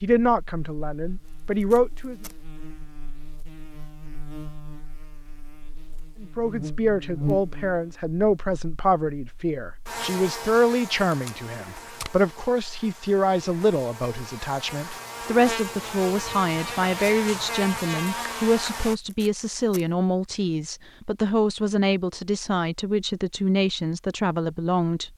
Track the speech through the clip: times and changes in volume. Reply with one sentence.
The speech can be heard briefly from 0.0 to 2.1 s; and from 6.2 to 25.1 s, at a steady volume.